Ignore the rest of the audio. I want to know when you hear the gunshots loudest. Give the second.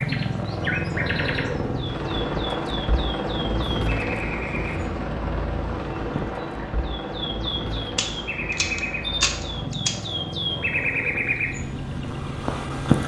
9 s.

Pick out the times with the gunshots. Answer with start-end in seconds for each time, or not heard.
8.0-10.0.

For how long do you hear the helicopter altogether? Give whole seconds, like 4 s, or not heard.
13 s.